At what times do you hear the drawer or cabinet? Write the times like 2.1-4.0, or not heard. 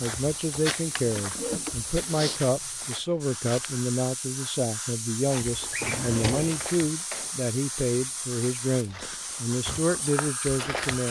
0.8-1.8, 5.7-6.6.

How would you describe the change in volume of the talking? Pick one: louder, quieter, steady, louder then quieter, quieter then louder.
steady.